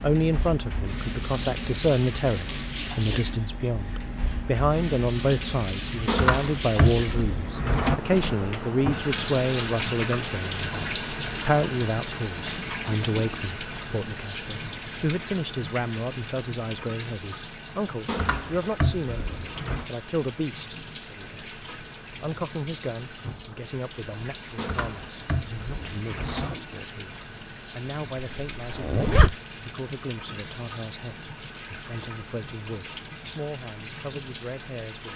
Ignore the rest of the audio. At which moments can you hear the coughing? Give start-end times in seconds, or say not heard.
not heard.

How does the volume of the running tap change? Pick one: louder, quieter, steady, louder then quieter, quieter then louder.
quieter.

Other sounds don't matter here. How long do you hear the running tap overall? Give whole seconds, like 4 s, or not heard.
35 s.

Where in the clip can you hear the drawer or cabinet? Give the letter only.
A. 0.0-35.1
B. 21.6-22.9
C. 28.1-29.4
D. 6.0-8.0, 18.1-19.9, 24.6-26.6
D.